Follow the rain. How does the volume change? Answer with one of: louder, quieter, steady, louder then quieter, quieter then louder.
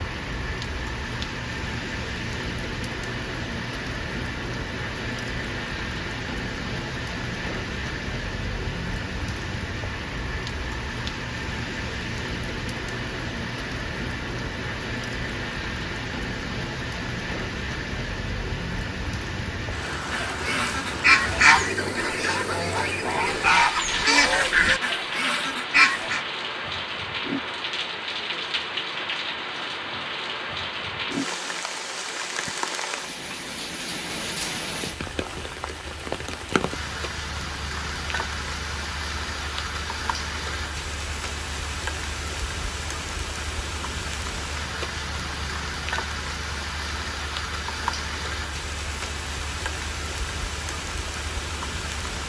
steady.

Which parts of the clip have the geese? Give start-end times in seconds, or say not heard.
20.1-26.2.